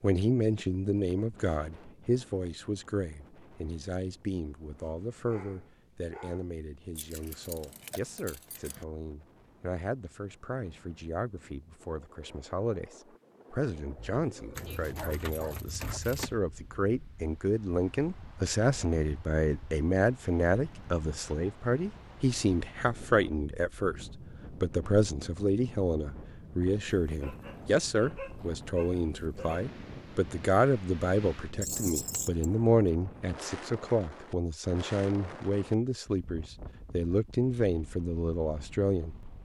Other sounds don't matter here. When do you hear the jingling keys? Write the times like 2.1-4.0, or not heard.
7.0-8.8, 14.6-16.4, 31.6-32.5.